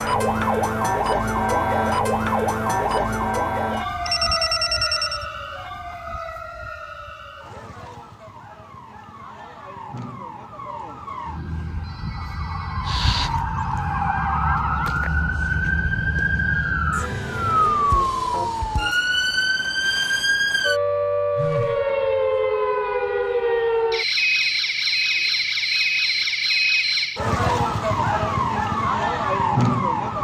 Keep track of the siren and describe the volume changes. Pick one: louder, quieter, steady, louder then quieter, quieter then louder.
quieter then louder.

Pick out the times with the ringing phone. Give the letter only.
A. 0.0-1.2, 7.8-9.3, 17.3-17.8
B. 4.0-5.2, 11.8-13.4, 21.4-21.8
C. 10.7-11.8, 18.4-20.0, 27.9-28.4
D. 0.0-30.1
B.